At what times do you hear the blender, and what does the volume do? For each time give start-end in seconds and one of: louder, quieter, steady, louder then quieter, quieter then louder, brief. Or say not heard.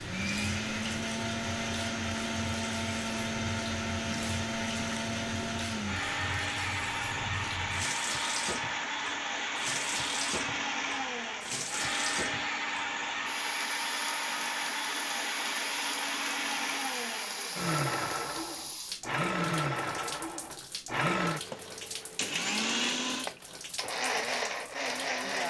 0.0-25.4 steady.